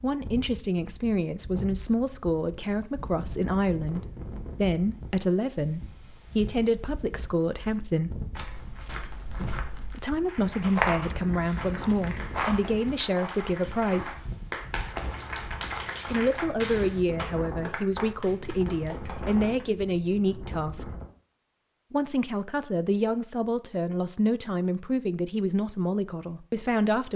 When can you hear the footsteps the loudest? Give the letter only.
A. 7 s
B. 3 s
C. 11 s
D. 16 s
C.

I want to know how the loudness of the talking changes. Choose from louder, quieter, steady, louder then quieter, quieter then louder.
steady.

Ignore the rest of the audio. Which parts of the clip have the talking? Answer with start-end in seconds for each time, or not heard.
0.0-8.1, 9.9-14.2, 16.1-20.9, 21.9-27.1.